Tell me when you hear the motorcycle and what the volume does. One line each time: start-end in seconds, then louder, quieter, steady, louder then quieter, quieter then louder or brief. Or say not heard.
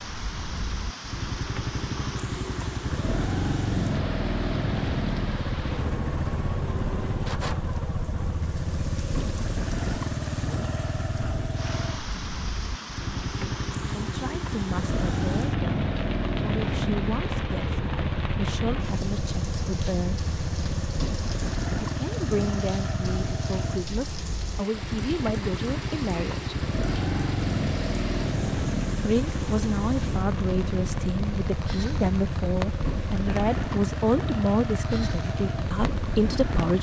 0.0-36.7 steady.